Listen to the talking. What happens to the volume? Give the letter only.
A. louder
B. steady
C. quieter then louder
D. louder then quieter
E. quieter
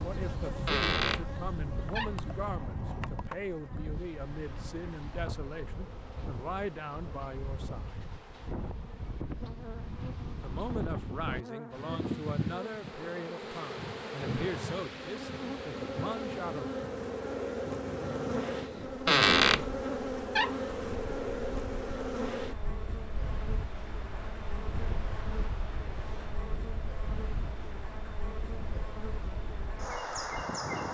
B.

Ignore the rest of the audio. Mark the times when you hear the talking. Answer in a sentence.
The talking can be heard from 0.0 to 8.0 s and from 10.4 to 16.6 s.